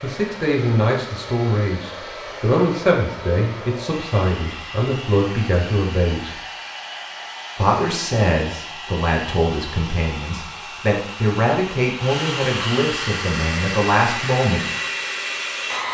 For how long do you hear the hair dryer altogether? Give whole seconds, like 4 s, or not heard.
16 s.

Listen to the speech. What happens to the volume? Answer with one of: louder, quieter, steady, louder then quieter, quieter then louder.
steady.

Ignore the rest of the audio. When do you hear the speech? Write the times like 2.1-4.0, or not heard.
0.0-6.4, 7.5-14.7.